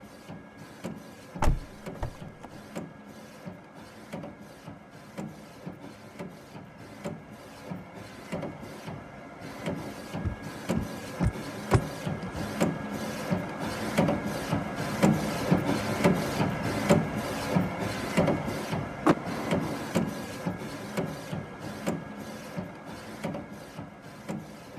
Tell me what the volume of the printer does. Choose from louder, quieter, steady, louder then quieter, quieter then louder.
louder then quieter.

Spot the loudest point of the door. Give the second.
19 s.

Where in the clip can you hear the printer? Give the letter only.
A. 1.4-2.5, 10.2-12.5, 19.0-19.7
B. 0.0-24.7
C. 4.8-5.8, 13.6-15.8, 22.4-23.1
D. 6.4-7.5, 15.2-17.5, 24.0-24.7
B.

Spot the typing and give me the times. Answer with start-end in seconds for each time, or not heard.
not heard.